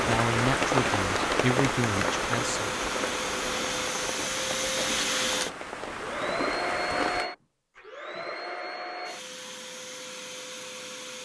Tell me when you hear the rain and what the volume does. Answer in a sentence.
The rain can be heard from 0.0 to 7.3 s, getting quieter.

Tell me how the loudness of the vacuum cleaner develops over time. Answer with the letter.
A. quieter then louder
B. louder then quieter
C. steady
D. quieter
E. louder
B.